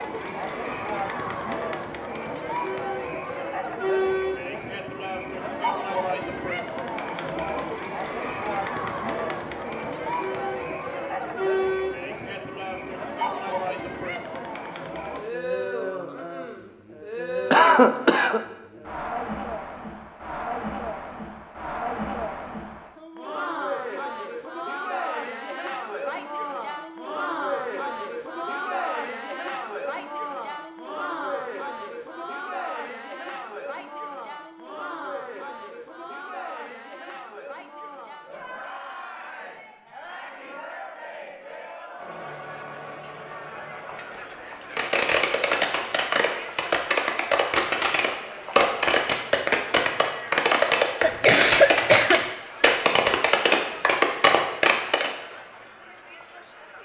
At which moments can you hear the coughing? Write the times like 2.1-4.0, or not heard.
17.5-18.4, 51.0-52.2.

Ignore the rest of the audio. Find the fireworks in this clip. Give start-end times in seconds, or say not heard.
44.8-55.1.